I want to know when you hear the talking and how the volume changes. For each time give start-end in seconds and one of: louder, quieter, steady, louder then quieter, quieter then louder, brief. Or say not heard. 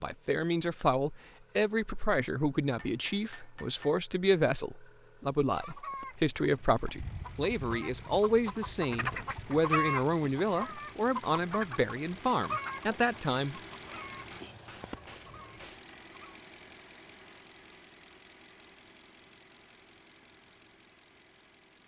0.0-13.6 steady.